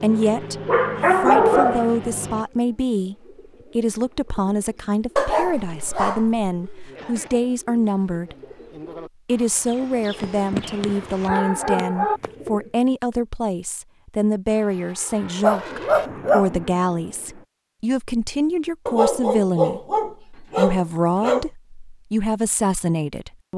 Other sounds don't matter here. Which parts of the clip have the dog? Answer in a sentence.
You can hear the dog from 0.2 to 1.9 s, from 5.2 to 6.9 s, from 10.2 to 12.2 s, from 15.4 to 16.7 s and from 18.9 to 21.4 s.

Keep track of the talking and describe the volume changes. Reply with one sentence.
The loudness of the talking stays about the same.